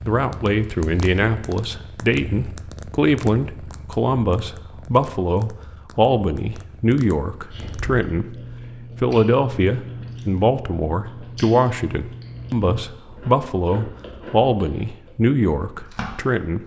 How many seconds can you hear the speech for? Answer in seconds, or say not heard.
16 s.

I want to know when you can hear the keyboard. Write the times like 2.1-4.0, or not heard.
not heard.